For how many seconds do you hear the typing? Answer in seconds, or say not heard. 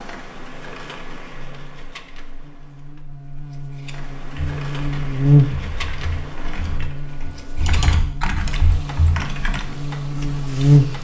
5 s.